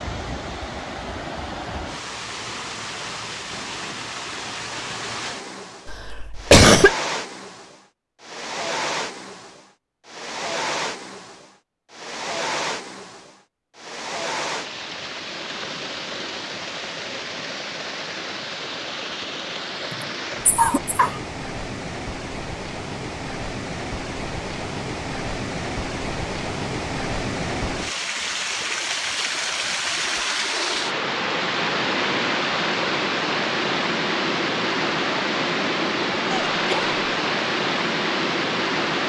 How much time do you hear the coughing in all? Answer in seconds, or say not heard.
3 s.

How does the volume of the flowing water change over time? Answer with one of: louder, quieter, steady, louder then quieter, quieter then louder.
louder.